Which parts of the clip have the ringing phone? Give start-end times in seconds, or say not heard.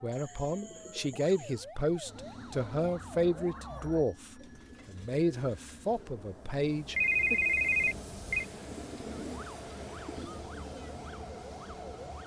7.0-8.4.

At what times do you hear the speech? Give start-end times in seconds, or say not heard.
0.0-7.4.